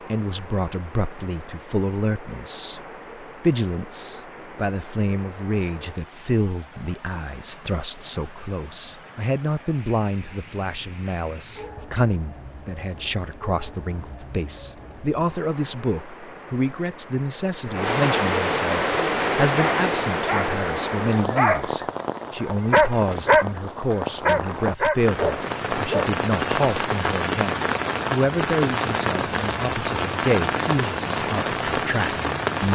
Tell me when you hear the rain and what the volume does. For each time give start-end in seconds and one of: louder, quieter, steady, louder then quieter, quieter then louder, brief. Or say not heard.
0.0-32.7 louder.